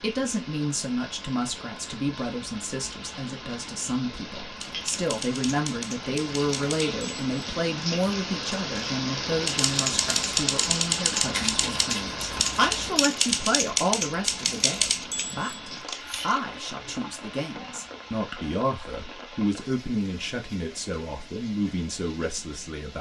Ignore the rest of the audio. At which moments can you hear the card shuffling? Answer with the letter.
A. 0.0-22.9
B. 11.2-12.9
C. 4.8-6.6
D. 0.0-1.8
B.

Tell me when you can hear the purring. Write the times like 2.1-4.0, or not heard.
not heard.